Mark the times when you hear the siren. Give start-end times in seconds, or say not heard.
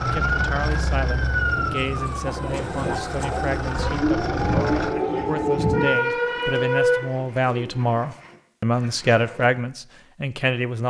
0.0-7.0.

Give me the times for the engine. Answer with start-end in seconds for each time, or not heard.
0.0-5.0.